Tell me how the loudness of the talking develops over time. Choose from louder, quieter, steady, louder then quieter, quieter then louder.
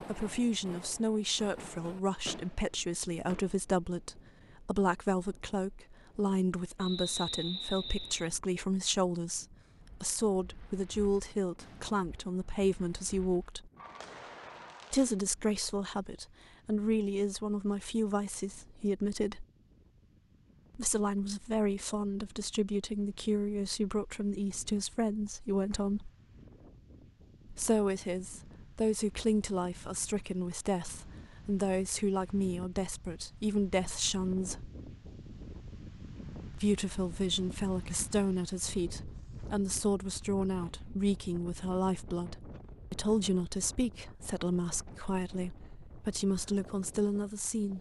steady.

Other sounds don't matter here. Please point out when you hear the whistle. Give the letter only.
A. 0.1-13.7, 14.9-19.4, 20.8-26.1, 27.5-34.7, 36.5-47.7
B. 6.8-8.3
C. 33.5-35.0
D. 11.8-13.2
B.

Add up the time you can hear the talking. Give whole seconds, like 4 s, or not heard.
42 s.